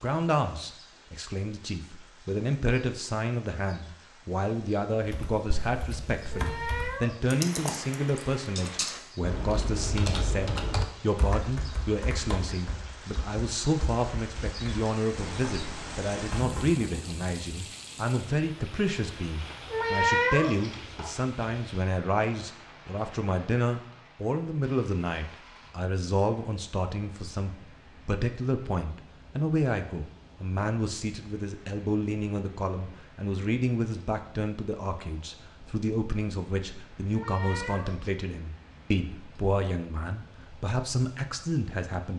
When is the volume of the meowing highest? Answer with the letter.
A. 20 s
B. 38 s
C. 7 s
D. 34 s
A.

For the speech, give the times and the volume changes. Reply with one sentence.
The speech can be heard from 0.0 to 42.1 s, at a steady volume.